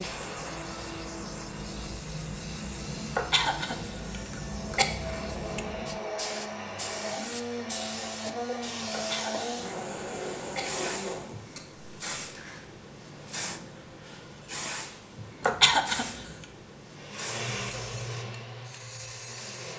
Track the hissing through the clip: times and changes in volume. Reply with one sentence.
The hissing can be heard from 0.0 to 19.7 s, at a steady volume.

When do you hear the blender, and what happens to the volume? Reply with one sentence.
The blender can be heard from 0.0 to 12.7 s, getting louder; and briefly from 16.9 to 19.7 s.